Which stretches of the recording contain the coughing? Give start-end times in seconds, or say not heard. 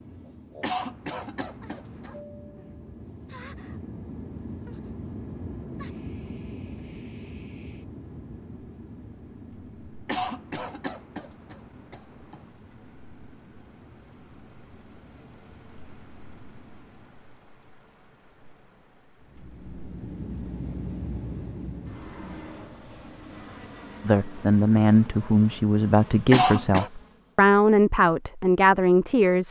0.6-2.2, 10.1-12.4, 26.3-26.9.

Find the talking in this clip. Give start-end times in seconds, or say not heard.
24.1-29.4.